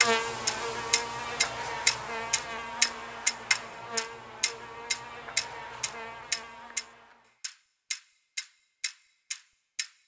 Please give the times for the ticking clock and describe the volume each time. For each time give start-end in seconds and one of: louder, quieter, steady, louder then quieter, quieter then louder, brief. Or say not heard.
0.0-9.9 quieter.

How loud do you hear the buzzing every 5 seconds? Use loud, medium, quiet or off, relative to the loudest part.
loud, medium.